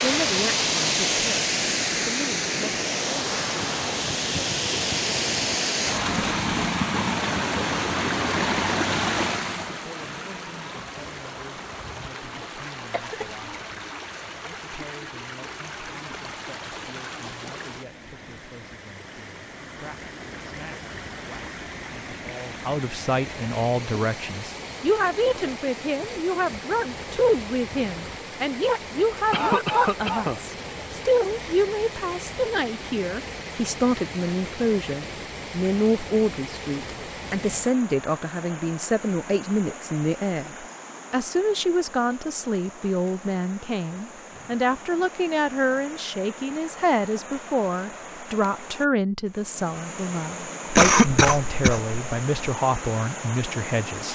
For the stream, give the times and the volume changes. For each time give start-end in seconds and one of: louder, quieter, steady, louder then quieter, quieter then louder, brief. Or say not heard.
0.0-54.1 quieter.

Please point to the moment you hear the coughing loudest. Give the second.
51 s.